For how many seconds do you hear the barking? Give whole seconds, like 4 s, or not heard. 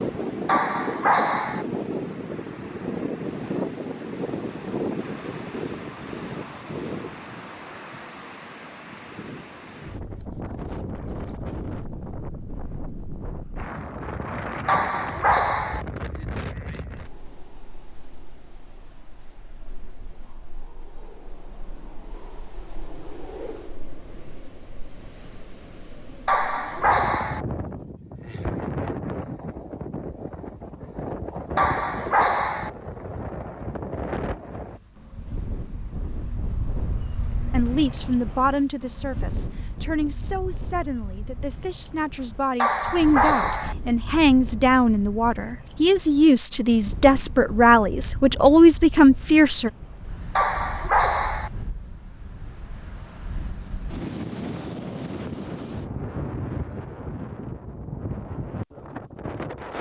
7 s.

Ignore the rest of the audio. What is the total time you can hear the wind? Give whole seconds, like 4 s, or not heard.
60 s.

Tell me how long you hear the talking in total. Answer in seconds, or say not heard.
12 s.